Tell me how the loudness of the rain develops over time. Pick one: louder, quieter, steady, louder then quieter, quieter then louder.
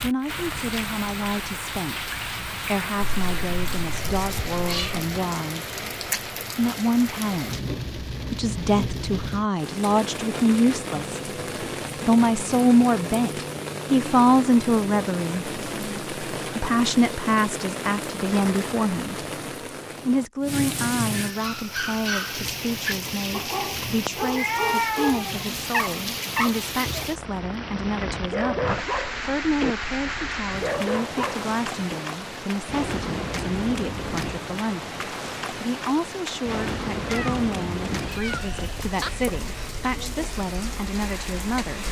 steady.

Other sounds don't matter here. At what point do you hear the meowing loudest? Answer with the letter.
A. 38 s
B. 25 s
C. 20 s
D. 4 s
B.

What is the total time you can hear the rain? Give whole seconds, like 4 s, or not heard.
42 s.